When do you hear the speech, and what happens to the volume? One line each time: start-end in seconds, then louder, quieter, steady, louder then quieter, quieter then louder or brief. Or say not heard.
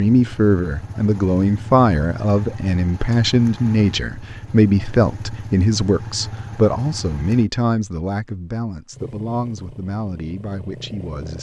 0.0-11.3 quieter.